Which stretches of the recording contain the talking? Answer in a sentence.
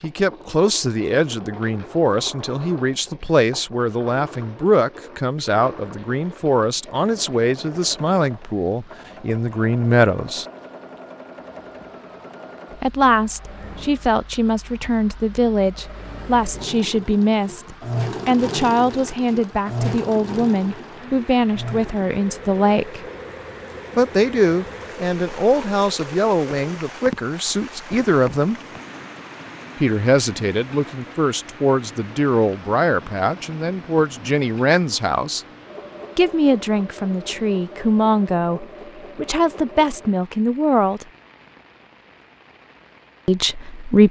You can hear the talking from 0.0 to 10.4 s, from 12.7 to 23.0 s, from 23.9 to 28.6 s, from 29.8 to 35.5 s, from 36.1 to 41.0 s and from 43.2 to 44.0 s.